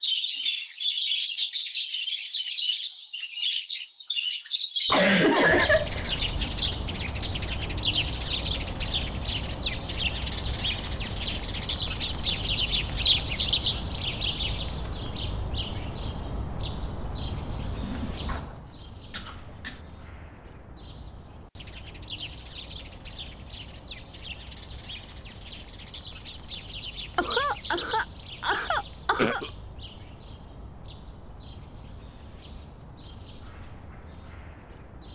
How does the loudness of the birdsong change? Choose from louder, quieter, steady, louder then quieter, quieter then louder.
quieter.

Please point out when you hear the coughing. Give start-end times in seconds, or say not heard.
4.8-6.2, 17.8-19.8, 27.1-29.5.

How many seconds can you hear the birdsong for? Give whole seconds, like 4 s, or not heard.
35 s.